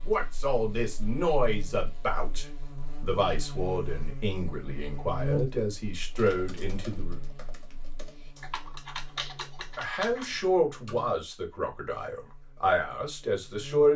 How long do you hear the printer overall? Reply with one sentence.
You can't hear the printer here.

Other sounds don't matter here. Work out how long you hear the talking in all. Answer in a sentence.
You can hear the talking for 11 seconds altogether.